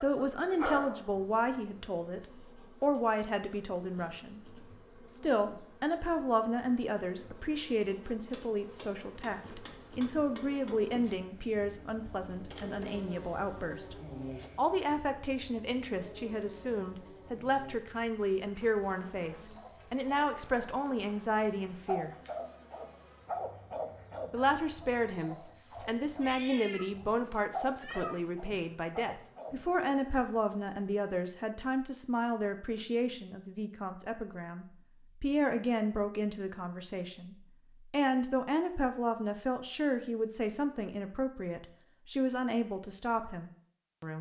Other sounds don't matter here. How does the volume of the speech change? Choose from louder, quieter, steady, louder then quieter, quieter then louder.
steady.